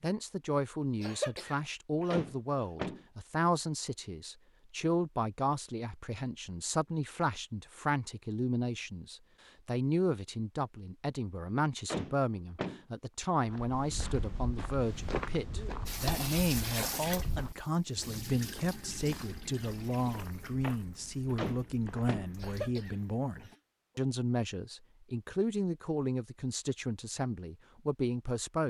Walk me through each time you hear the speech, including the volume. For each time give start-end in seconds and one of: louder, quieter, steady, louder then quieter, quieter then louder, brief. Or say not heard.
0.0-28.6 steady.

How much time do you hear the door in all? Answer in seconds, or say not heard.
3 s.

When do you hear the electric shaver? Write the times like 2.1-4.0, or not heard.
not heard.